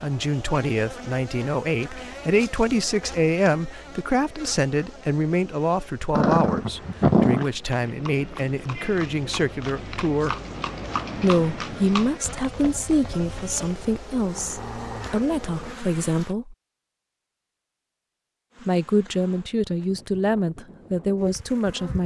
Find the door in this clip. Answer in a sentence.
The door can't be heard in this clip.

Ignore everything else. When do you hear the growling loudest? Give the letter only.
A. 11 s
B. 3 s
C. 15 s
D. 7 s
D.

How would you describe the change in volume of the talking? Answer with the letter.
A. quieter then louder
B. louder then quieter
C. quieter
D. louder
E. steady
E.